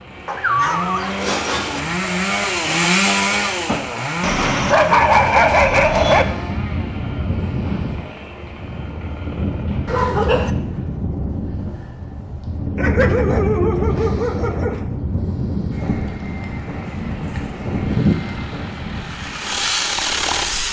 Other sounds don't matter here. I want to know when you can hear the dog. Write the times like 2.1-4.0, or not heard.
0.2-1.8, 4.2-6.2, 9.8-10.5, 12.8-14.8, 16.9-18.1.